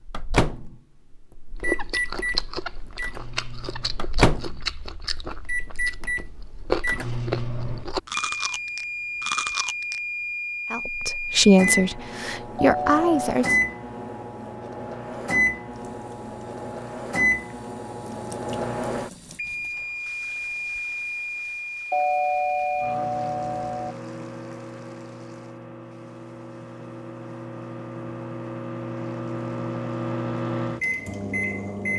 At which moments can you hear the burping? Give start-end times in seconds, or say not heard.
not heard.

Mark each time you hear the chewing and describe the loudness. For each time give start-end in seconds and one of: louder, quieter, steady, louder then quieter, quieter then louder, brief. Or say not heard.
1.6-10.0 quieter then louder.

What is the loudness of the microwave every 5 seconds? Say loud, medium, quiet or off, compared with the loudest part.
loud, loud, loud, loud, medium, medium, loud.